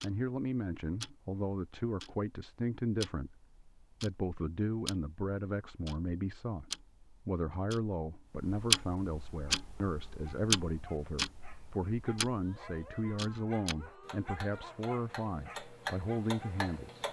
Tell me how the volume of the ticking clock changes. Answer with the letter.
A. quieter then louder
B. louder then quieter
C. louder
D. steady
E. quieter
B.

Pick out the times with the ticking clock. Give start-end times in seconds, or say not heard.
0.0-17.0.